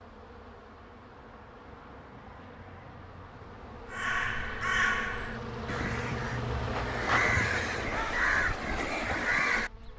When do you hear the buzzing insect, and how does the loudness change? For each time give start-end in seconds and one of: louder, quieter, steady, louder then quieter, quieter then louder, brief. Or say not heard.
0.0-9.9 louder then quieter.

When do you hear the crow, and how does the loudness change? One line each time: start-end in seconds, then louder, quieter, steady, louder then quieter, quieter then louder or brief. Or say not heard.
3.9-9.7 quieter then louder.